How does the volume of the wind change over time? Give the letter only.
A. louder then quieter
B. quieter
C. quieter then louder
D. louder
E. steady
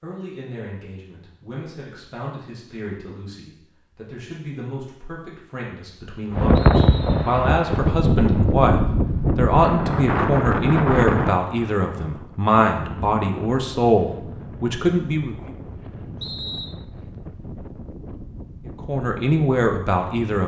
B.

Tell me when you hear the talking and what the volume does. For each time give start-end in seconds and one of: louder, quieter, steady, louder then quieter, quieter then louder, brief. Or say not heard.
0.0-15.5 louder
18.9-20.4 brief.